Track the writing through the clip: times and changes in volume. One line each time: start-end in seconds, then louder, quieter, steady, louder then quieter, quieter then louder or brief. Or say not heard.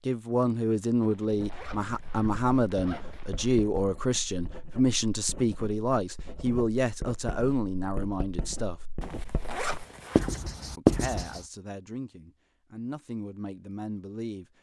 1.2-11.4 louder.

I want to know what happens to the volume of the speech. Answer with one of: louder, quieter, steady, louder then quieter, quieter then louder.
quieter.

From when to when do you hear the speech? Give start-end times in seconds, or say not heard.
0.1-8.8, 10.8-14.4.